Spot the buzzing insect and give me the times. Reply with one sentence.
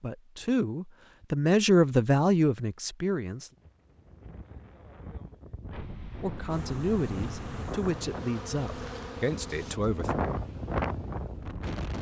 The buzzing insect can be heard from 6.5 to 9.8 s.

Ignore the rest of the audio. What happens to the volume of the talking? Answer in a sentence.
The loudness of the talking goes down.